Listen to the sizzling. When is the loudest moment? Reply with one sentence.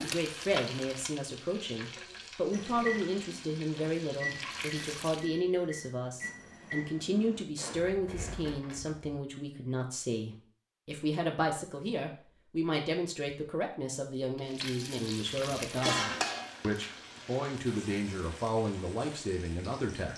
The loudest moment of the sizzling is at 16 seconds.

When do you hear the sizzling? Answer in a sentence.
You can hear the sizzling from 0.0 to 5.2 s and from 14.3 to 20.1 s.